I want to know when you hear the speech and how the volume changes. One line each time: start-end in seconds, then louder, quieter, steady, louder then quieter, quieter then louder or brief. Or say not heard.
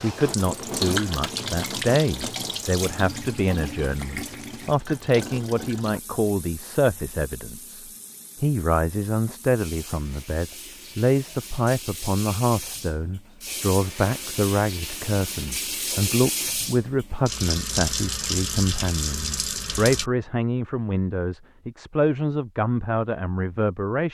0.0-24.1 steady.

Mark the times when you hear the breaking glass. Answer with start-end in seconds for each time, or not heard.
not heard.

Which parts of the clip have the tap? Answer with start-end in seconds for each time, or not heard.
0.0-20.1.